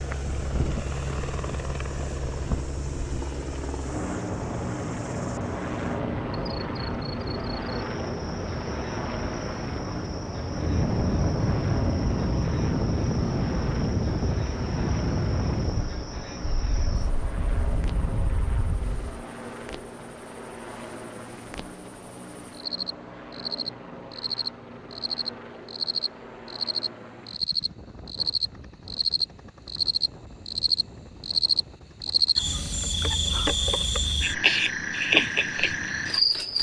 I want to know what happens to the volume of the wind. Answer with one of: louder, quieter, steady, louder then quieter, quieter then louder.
louder then quieter.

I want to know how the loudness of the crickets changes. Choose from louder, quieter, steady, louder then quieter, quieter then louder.
louder.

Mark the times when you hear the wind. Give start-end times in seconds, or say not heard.
0.2-19.2.